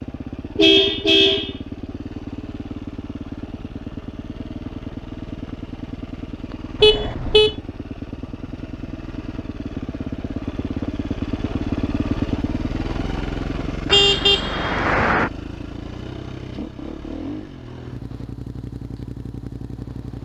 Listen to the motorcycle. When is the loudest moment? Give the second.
12 s.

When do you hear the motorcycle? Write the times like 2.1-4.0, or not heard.
0.0-20.1.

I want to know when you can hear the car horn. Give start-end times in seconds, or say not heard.
0.6-1.6, 6.8-7.5, 13.8-15.3.